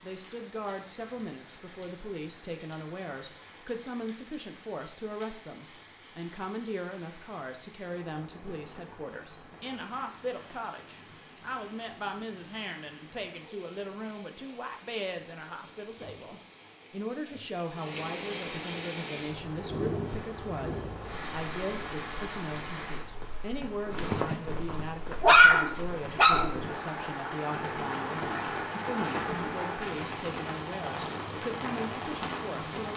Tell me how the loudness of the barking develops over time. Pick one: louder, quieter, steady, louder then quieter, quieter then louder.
quieter.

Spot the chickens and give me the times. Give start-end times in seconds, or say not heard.
not heard.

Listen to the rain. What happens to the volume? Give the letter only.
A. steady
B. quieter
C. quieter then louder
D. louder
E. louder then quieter
D.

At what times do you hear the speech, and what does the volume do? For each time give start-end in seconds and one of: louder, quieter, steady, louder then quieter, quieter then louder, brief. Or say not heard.
0.0-32.9 steady.